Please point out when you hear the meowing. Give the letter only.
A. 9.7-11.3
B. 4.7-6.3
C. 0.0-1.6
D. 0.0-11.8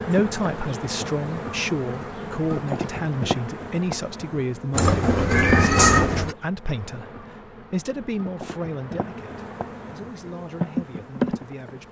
B.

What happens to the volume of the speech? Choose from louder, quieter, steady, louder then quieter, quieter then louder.
quieter.